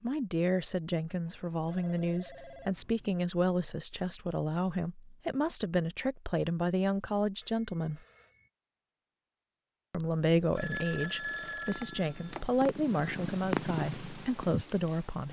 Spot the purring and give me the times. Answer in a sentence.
The purring can be heard from 9.9 to 15.2 s.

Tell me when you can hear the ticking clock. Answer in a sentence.
You can't hear the ticking clock here.